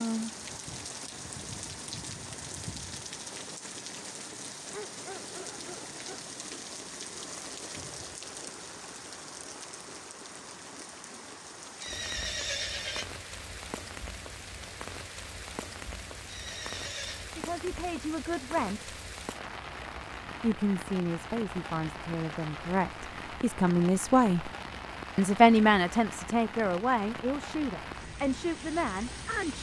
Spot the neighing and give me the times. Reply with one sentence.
The neighing can be heard from 11.8 to 13.1 s and from 16.2 to 17.3 s.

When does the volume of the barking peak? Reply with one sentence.
The volume of the barking peaks at 5 seconds.